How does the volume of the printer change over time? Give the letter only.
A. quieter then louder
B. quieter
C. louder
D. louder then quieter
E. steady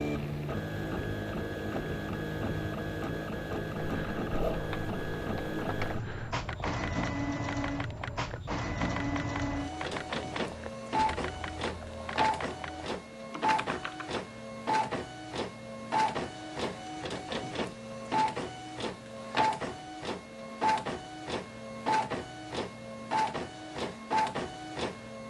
E.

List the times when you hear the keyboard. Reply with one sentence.
The keyboard can be heard from 3.8 to 14.2 s.